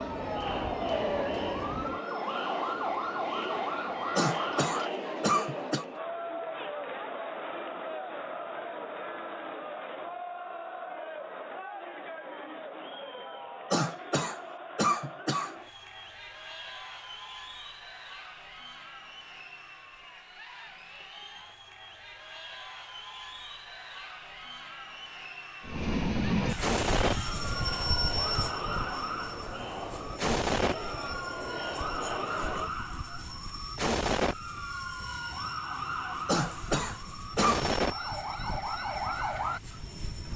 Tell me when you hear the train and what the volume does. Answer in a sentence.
The train can be heard from 25.6 to 40.3 s, getting quieter.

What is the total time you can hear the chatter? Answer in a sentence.
The chatter can be heard for 33 seconds in total.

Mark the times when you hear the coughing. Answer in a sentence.
You can hear the coughing from 4.2 to 5.8 s, from 13.7 to 15.6 s and from 36.2 to 37.7 s.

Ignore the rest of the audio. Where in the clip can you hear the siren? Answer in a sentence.
You can hear the siren from 0.0 to 4.9 s and from 26.6 to 40.3 s.